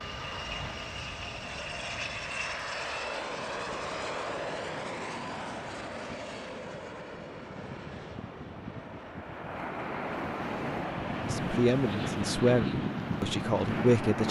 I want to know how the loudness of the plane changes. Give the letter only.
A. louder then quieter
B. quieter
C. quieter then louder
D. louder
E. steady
C.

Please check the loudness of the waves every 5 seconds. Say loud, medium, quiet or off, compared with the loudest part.
quiet, medium, loud.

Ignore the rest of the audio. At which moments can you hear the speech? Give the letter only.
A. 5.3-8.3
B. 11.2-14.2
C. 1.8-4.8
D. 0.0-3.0
B.